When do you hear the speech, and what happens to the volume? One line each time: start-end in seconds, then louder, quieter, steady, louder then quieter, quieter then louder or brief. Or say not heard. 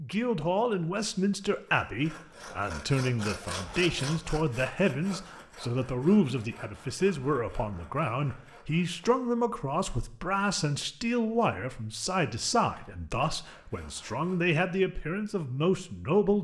0.0-16.3 steady.